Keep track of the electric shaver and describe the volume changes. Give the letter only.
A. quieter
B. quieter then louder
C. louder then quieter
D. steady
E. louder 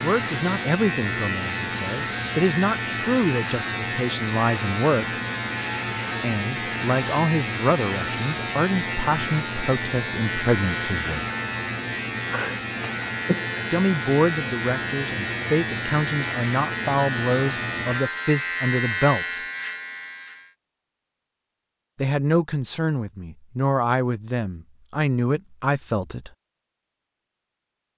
D.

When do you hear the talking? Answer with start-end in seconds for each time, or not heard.
0.0-5.2, 6.2-11.2, 13.7-19.4, 21.9-26.3.